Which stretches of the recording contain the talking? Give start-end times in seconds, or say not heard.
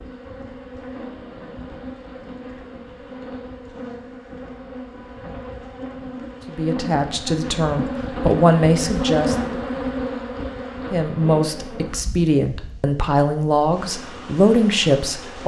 6.5-9.6, 10.9-15.4.